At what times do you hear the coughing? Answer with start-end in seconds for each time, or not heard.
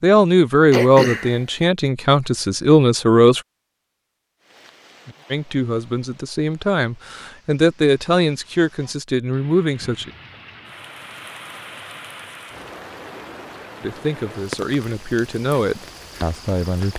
0.7-1.4.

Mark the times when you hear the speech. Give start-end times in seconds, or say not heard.
0.0-3.4, 5.3-10.1, 13.8-16.9.